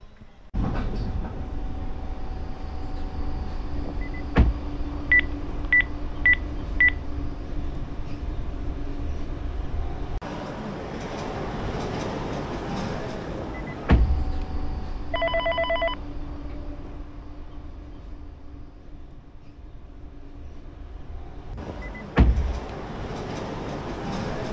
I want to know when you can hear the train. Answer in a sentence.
You can hear the train from 0.0 to 24.4 s.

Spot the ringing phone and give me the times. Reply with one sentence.
You can hear the ringing phone from 5.1 to 7.0 s and from 15.1 to 16.9 s.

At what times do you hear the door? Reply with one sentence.
The door can be heard from 3.7 to 4.6 s, from 13.2 to 14.4 s and from 21.5 to 22.7 s.